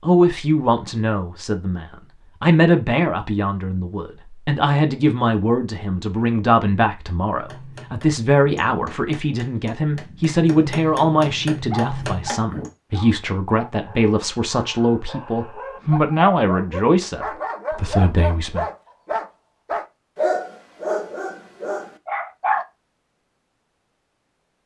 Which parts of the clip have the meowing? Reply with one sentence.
You can't hear the meowing here.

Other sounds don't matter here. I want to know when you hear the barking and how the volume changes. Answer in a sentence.
The barking can be heard from 11.7 to 22.6 s, getting louder.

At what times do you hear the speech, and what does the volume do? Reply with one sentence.
The speech can be heard from 0.0 to 18.6 s, at a steady volume.